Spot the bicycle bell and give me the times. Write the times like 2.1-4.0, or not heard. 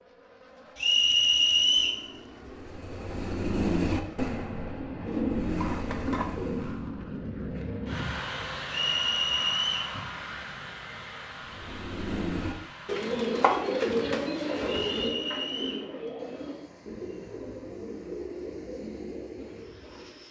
not heard.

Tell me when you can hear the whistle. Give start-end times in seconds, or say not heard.
0.8-2.0, 8.7-9.9, 14.9-15.8.